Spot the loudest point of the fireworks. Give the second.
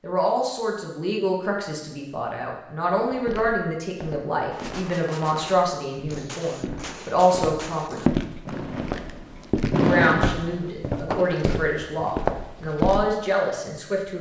10 s.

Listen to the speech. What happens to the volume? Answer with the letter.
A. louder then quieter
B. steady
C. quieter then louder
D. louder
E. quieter
B.